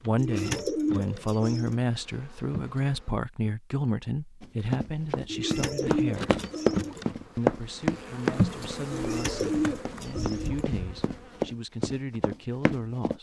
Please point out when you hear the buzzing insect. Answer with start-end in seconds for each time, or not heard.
0.0-3.1, 5.8-11.4.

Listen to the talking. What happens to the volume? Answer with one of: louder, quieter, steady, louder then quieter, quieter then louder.
quieter.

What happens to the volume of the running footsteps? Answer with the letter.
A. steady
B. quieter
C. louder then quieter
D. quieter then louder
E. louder
C.